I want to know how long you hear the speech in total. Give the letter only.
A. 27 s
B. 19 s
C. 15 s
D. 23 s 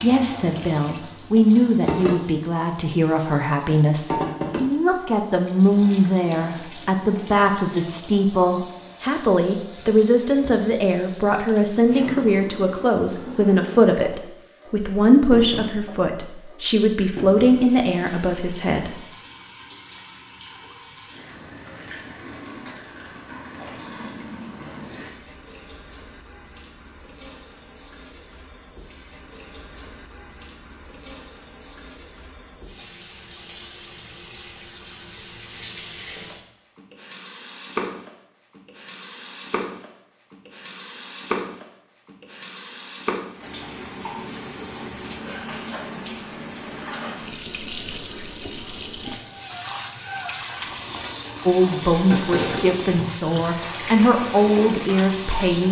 D.